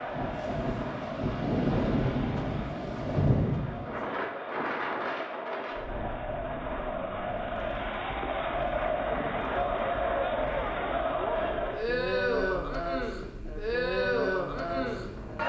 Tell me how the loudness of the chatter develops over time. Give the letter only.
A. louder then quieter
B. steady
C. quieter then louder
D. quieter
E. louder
E.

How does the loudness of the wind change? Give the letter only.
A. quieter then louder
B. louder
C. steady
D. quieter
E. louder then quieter
D.